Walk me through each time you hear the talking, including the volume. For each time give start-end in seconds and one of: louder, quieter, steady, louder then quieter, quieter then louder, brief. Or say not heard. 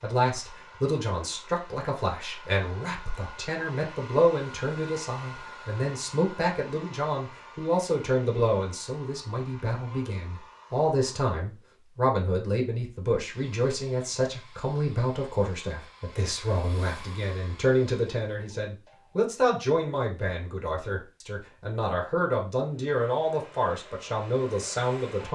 0.0-25.3 steady.